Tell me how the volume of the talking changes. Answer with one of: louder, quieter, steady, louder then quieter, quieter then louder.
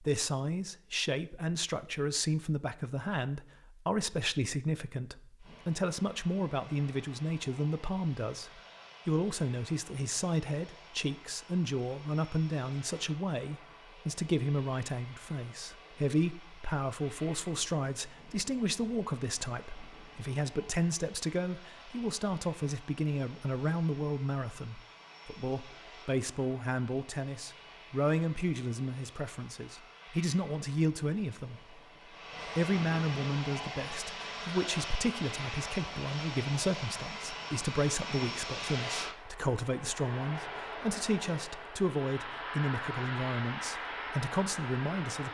steady.